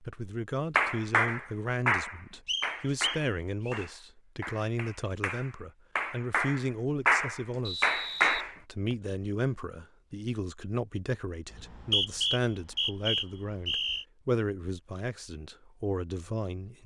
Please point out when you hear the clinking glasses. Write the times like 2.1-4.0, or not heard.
not heard.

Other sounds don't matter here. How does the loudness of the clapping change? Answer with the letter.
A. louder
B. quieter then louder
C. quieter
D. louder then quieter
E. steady
B.